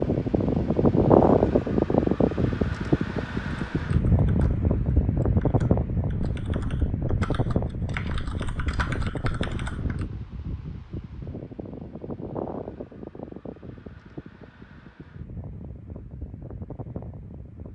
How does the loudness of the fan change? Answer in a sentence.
The volume of the fan goes down.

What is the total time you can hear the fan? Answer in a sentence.
The fan can be heard for 18 seconds in total.